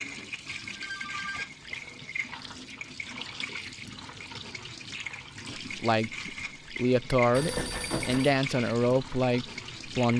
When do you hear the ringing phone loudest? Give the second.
8 s.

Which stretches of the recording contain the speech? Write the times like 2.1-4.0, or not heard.
5.6-10.1.